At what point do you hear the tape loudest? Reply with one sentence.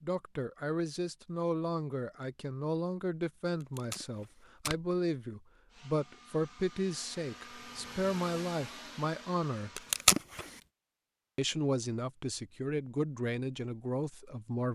The volume of the tape peaks at 10 seconds.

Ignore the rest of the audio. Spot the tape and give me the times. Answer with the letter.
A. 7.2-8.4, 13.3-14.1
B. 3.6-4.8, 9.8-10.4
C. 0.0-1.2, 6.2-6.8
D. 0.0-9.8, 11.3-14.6
B.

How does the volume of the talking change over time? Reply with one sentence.
The loudness of the talking stays about the same.